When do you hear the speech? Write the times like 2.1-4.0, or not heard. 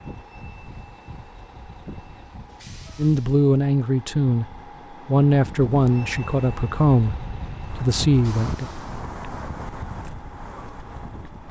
3.0-4.5, 5.0-8.7.